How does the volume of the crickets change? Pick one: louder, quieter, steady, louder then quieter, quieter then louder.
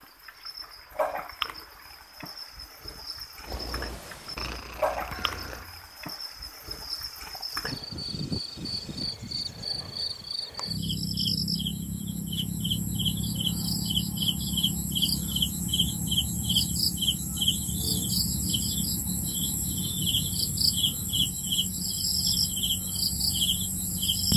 louder.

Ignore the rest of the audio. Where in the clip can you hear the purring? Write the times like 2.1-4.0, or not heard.
3.5-5.7.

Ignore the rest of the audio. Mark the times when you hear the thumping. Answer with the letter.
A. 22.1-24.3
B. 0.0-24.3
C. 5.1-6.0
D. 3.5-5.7
C.